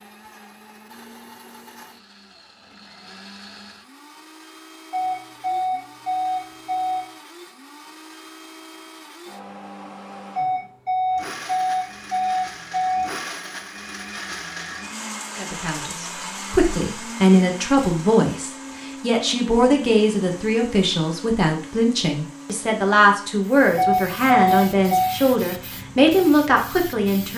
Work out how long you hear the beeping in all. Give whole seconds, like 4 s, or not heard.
6 s.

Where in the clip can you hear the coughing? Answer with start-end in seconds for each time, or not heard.
not heard.